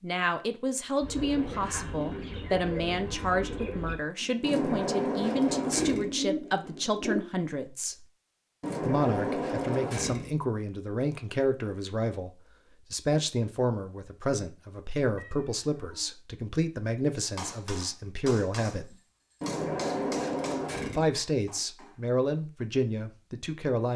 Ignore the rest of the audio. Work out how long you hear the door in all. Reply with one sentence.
You can hear the door for 5 seconds altogether.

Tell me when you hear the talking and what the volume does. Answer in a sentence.
You can hear the talking from 0.0 to 8.1 s, at a steady volume; from 8.8 to 18.9 s, at a steady volume; and briefly from 20.9 to 23.9 s.